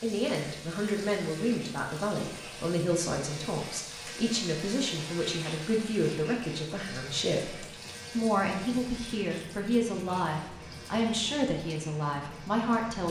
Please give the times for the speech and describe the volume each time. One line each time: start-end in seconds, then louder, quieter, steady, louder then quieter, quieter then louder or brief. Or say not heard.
0.0-13.0 steady.